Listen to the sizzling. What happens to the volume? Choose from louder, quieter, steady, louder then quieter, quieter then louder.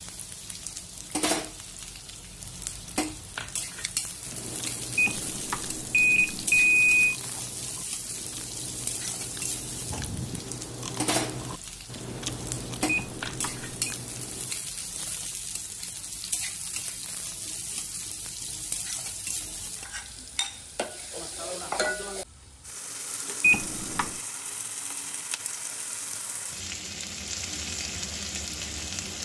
steady.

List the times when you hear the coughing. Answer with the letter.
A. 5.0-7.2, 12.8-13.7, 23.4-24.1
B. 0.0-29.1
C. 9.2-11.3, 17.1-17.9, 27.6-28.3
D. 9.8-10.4
D.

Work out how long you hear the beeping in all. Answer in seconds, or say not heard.
4 s.